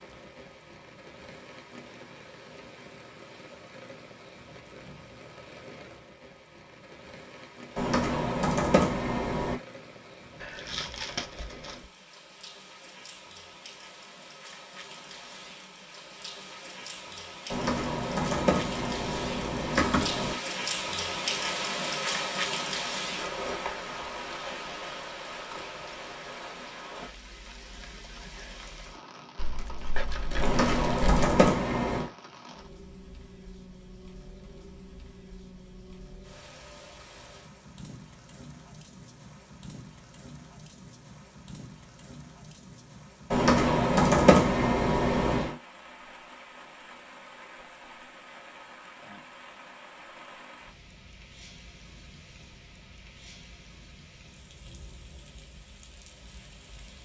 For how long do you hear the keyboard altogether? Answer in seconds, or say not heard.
9 s.